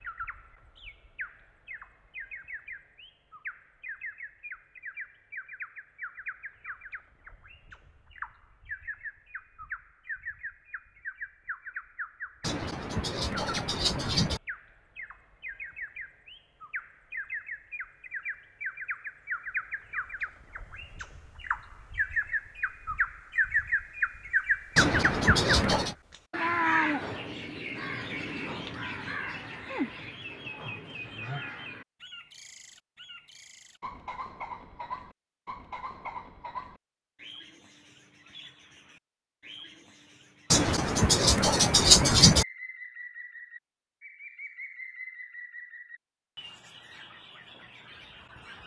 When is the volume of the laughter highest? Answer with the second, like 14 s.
42 s.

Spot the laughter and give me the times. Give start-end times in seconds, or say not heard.
12.4-14.4, 24.8-25.9, 40.5-42.5.